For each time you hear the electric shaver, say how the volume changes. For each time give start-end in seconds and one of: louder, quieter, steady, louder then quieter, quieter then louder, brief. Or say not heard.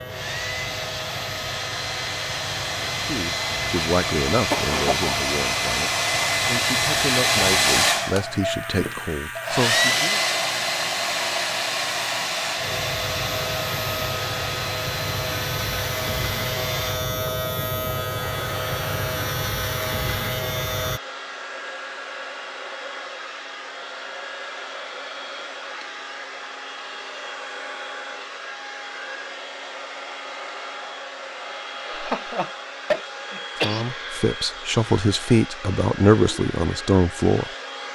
0.0-21.0 louder.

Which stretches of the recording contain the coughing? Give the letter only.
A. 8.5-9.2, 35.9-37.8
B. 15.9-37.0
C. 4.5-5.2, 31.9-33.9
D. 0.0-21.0
C.